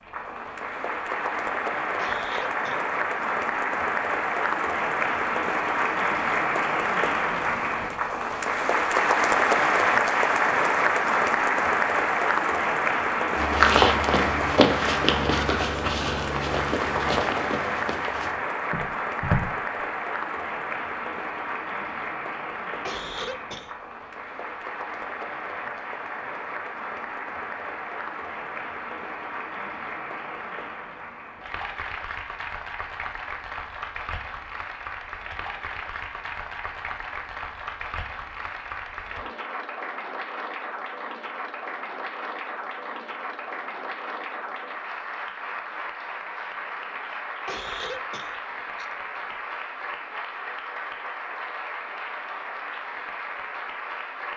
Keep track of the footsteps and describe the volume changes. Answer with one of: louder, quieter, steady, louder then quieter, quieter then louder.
quieter.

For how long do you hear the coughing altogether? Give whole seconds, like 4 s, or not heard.
4 s.